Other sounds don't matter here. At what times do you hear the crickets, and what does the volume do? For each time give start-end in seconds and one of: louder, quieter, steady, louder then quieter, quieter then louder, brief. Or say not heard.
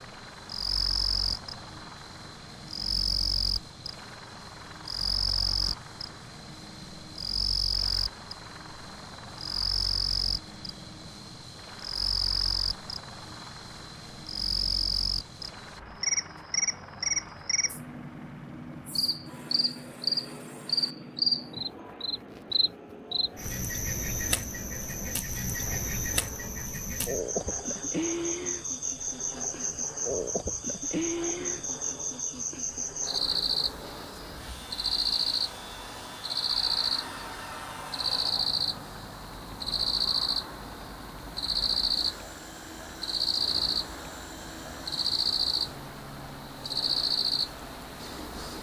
0.0-48.5 steady.